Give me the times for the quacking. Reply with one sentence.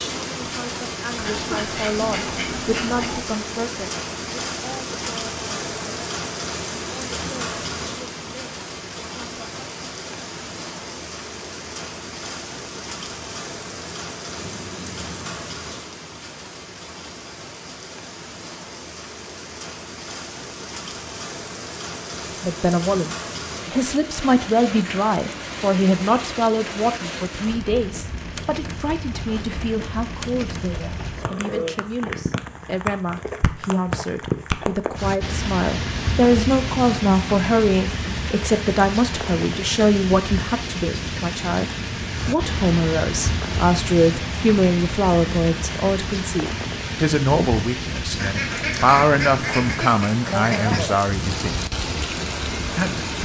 The quacking can be heard from 1.1 to 3.2 s and from 48.1 to 50.9 s.